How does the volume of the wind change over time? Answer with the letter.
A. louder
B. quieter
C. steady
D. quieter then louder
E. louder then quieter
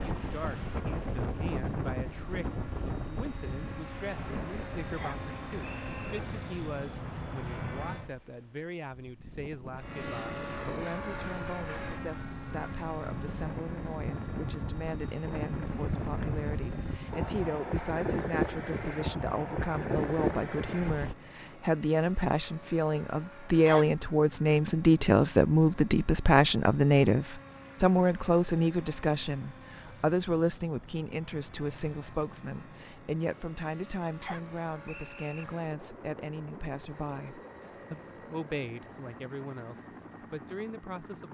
D.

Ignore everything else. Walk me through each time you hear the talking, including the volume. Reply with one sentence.
The talking can be heard from 0.0 to 41.2 s, getting louder then quieter.